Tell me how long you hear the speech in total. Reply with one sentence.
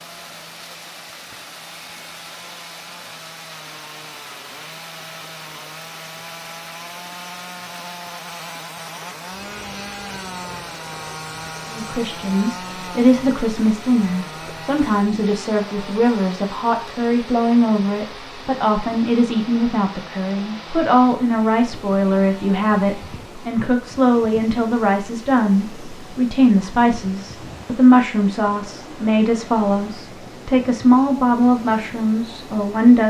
You can hear the speech for 21 seconds altogether.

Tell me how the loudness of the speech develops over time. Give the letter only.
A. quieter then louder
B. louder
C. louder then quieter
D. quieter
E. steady
E.